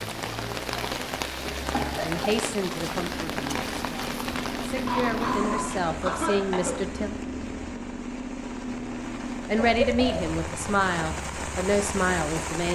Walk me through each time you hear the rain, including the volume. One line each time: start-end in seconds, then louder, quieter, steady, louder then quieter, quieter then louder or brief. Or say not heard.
0.0-12.7 quieter then louder.